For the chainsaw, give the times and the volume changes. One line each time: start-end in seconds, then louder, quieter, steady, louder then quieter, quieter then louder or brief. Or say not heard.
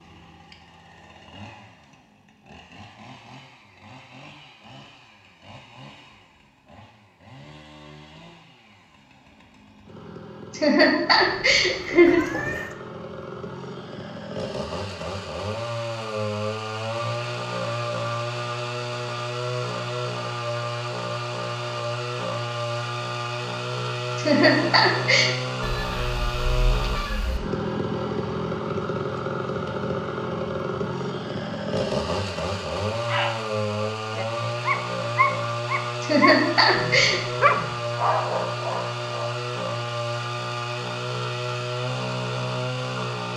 0.0-43.3 louder.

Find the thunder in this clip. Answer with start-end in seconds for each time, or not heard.
not heard.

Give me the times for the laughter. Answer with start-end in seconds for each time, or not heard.
10.5-12.2, 24.1-25.3, 36.0-37.2.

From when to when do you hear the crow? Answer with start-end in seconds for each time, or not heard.
not heard.